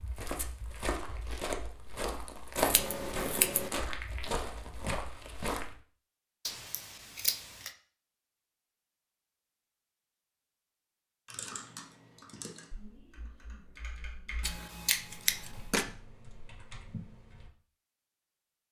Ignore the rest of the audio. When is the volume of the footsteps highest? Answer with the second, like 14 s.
3 s.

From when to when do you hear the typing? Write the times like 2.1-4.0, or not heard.
11.2-17.5.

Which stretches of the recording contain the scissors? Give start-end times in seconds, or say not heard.
2.5-3.7, 6.5-7.7, 14.4-15.8.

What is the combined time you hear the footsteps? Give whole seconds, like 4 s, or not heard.
6 s.